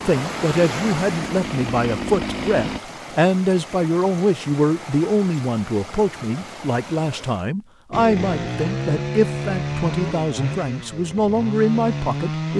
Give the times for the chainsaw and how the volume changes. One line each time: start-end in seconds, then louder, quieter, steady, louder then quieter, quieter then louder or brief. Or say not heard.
0.1-2.8 brief
7.9-12.5 quieter then louder.